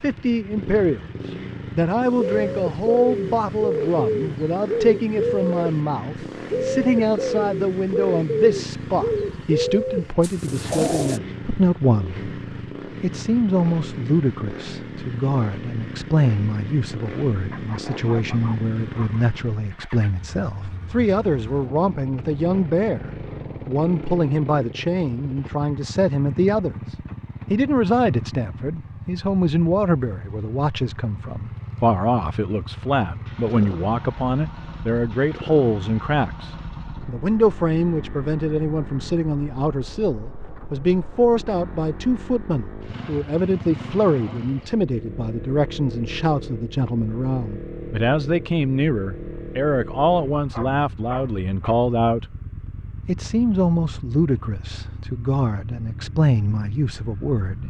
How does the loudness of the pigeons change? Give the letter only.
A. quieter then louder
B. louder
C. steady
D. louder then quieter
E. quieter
C.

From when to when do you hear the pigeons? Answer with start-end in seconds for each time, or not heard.
2.1-11.2.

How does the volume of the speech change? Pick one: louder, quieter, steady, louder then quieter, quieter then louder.
steady.